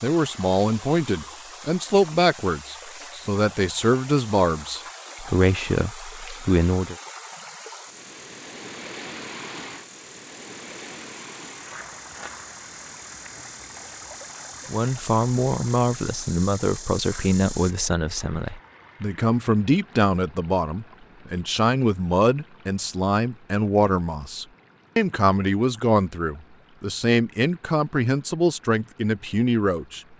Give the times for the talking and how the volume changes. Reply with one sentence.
The talking can be heard from 0.0 to 7.0 s, at a steady volume; and from 14.7 to 30.0 s, at a steady volume.